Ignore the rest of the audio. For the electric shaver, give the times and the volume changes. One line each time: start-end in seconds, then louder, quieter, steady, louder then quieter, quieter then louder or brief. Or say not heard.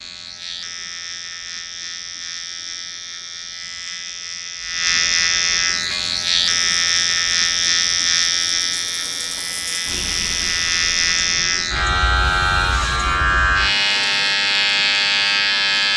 0.0-15.9 louder.